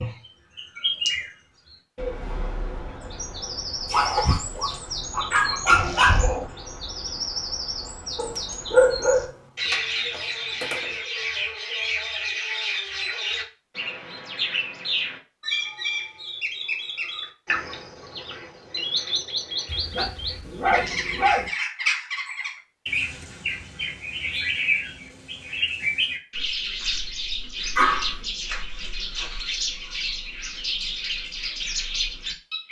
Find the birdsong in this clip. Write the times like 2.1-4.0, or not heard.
0.0-32.6.